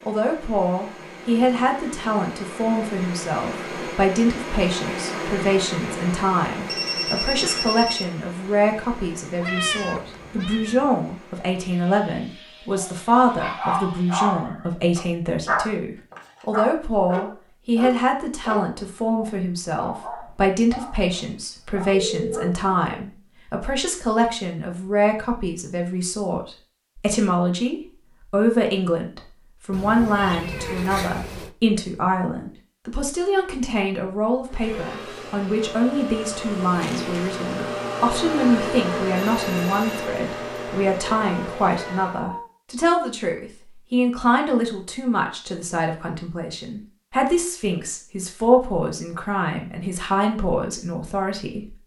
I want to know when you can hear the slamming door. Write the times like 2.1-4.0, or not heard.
not heard.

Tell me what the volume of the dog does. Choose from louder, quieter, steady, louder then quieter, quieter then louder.
quieter.